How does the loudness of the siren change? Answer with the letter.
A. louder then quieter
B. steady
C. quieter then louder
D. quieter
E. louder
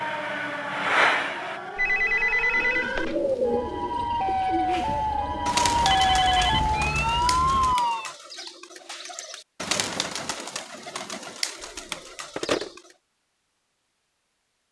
E.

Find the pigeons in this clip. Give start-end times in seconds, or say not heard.
2.5-12.9.